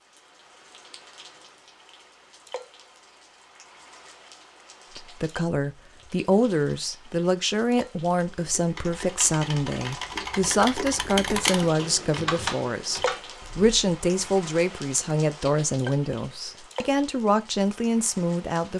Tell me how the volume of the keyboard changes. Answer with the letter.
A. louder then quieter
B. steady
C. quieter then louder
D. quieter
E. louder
E.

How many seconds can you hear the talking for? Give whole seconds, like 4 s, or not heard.
14 s.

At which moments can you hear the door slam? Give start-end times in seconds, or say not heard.
not heard.